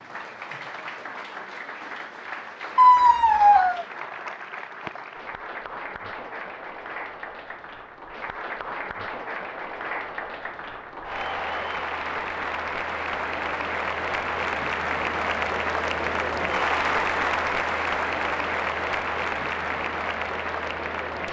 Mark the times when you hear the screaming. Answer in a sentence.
You can hear the screaming from 2.8 to 3.9 s.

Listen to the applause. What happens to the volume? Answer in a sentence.
The loudness of the applause goes up.